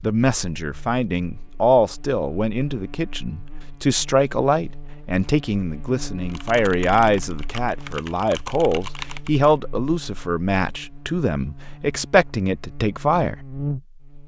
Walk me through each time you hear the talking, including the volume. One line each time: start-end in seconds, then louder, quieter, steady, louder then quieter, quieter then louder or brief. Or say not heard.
0.0-13.3 steady.